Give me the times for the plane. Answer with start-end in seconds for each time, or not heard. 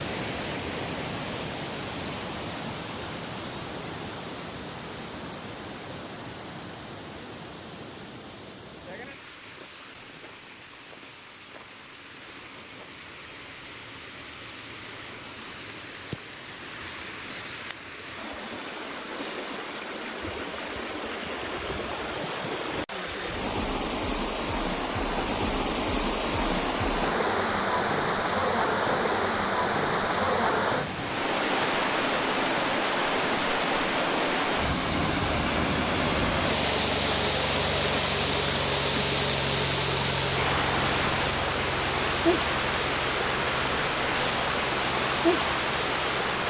34.6-46.4.